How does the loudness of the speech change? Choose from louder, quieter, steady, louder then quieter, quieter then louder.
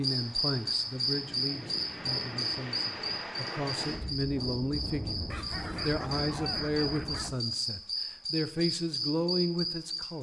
louder.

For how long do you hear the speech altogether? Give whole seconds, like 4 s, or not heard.
10 s.